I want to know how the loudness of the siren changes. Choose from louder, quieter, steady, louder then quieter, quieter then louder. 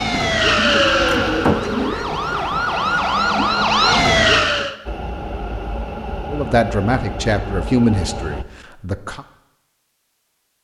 quieter then louder.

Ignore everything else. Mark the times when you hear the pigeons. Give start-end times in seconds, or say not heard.
0.1-1.9.